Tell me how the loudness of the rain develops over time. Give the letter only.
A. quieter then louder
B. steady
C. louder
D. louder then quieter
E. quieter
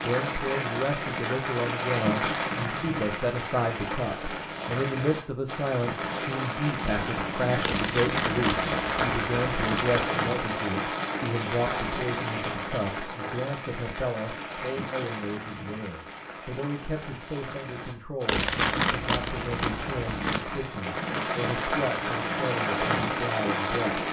A.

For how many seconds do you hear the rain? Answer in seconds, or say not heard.
24 s.